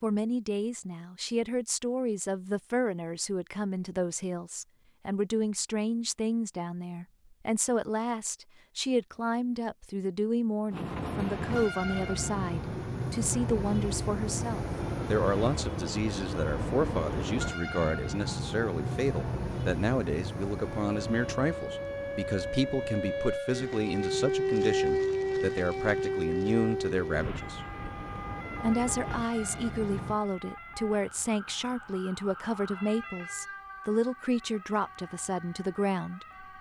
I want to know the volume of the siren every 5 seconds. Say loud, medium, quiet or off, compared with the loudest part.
off, off, off, off, loud, loud, quiet, quiet.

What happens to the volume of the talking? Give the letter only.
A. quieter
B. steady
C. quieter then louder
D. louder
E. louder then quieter
B.